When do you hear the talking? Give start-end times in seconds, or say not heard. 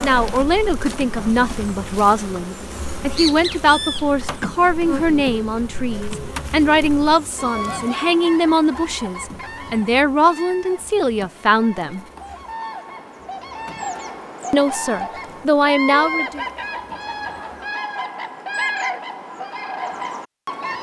0.0-12.1, 14.5-16.4.